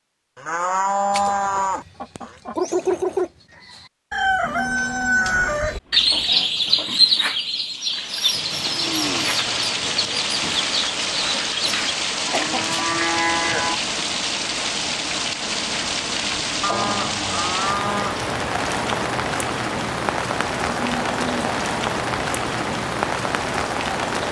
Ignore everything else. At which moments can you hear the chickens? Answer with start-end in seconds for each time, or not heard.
1.1-12.7.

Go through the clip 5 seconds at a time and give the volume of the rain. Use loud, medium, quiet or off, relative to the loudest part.
off, loud, loud, loud, loud.